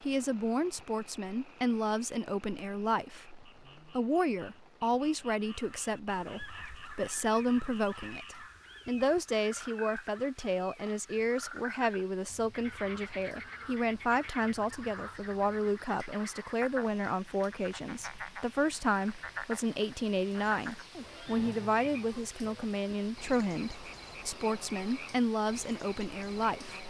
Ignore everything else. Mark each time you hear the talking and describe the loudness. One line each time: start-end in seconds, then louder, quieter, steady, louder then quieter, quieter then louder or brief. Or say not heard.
0.0-26.8 steady.